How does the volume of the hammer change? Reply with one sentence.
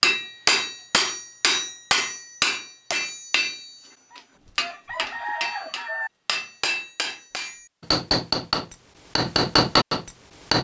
The volume of the hammer goes down, then up.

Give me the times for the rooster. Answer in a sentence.
You can hear the rooster from 4.1 to 6.1 s.